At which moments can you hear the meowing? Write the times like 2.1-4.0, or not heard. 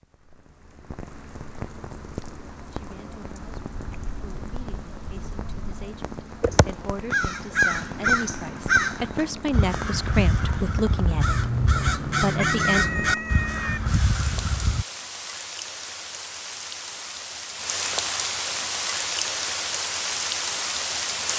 12.3-13.8.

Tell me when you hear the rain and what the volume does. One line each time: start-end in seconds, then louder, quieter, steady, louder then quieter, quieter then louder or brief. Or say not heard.
0.0-21.3 louder.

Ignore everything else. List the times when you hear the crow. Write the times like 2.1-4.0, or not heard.
6.4-14.8.